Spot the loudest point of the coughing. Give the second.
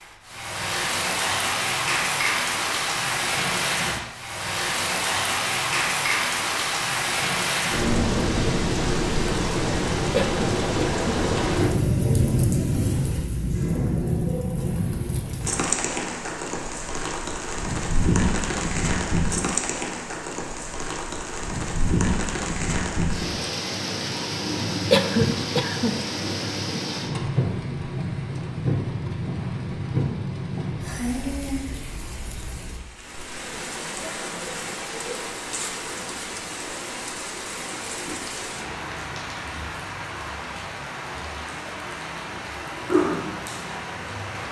25 s.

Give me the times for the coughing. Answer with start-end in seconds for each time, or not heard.
10.1-11.2, 24.9-25.9.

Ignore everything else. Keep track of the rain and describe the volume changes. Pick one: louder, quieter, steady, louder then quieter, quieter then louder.
quieter.